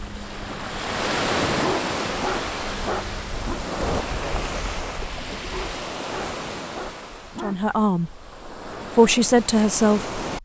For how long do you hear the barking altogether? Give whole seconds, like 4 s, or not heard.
4 s.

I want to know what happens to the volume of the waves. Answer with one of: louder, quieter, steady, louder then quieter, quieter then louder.
quieter.